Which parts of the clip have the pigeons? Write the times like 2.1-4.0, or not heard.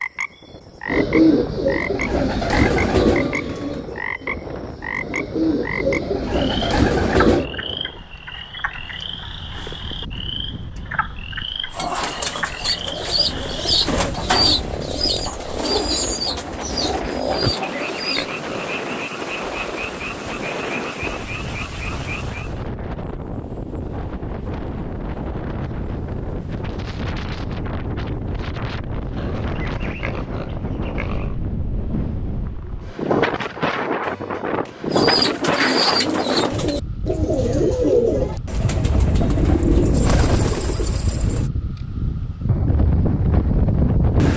0.8-7.5, 11.7-18.3, 34.9-41.5.